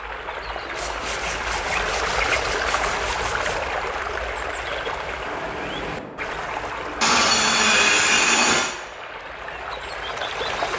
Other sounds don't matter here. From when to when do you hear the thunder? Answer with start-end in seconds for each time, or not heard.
5.2-7.2.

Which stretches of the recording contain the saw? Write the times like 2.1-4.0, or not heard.
0.8-3.6, 7.0-8.8.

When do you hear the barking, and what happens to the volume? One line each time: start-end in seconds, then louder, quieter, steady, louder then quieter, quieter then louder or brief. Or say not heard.
not heard.